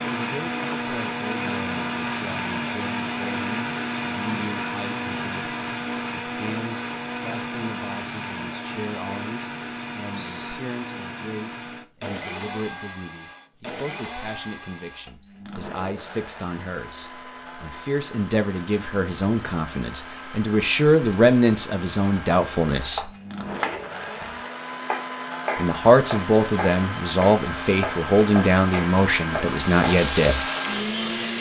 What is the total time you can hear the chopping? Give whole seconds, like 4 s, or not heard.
7 s.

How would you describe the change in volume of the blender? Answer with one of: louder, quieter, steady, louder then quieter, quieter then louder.
quieter then louder.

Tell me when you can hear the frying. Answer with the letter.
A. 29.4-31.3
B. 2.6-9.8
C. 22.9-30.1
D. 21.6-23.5
A.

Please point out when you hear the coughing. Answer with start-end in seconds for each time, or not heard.
not heard.